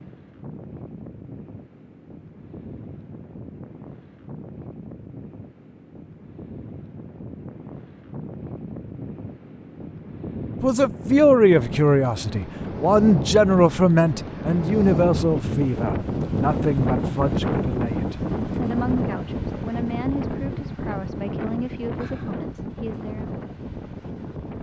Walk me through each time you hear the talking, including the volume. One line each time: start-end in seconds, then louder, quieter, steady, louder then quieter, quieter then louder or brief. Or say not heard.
10.6-23.2 quieter.